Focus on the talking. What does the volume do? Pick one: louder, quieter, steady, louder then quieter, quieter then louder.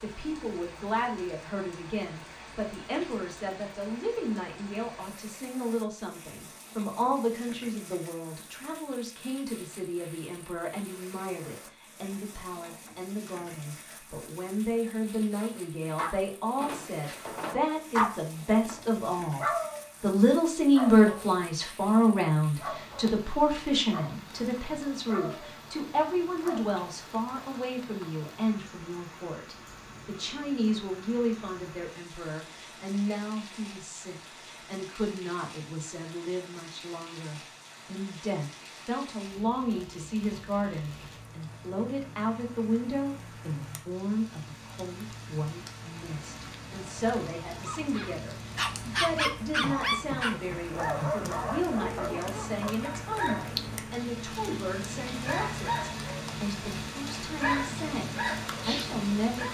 louder then quieter.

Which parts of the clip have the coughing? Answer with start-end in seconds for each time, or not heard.
49.6-51.4.